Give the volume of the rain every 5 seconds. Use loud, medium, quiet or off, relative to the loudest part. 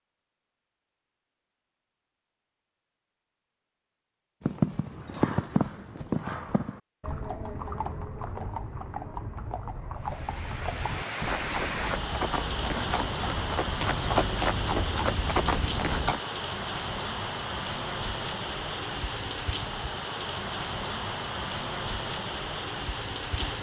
off, off, loud, loud, loud.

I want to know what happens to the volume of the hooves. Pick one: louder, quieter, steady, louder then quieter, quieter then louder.
quieter then louder.